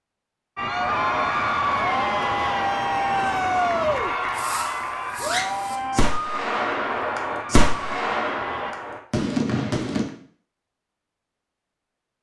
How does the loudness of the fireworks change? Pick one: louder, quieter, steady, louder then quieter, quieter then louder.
louder.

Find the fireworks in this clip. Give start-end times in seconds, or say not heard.
3.1-10.1.